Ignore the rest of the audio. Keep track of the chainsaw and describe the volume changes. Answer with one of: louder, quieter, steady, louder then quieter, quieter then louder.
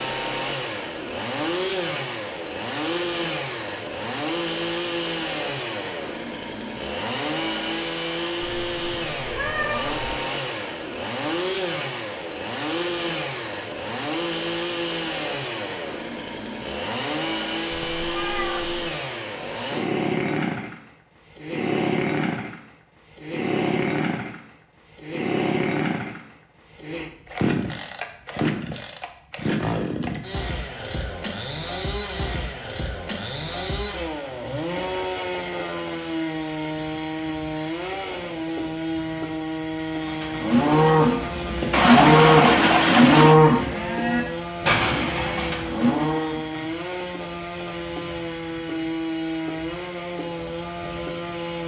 steady.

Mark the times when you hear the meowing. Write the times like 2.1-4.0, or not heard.
8.4-10.1, 17.7-18.9, 41.7-43.4.